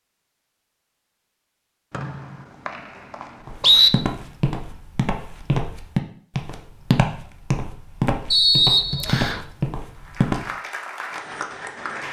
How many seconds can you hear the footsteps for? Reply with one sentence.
You can hear the footsteps for 7 seconds altogether.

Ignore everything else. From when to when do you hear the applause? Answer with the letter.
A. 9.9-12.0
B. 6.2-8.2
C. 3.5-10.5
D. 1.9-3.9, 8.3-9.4
A.